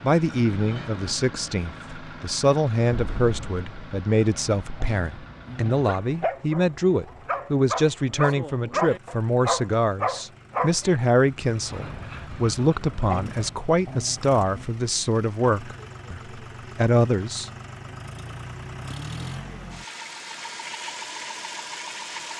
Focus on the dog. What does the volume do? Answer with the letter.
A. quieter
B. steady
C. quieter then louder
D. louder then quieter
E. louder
D.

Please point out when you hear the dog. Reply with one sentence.
The dog can be heard from 4.3 to 14.7 s.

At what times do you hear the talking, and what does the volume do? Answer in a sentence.
The talking can be heard from 0.0 to 17.5 s, at a steady volume.